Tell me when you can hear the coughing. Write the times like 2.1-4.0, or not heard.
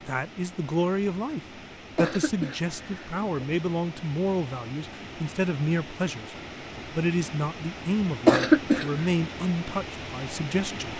1.9-3.5, 8.2-8.8.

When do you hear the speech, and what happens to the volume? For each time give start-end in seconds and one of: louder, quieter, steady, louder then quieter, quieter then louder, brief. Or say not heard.
0.1-10.9 steady.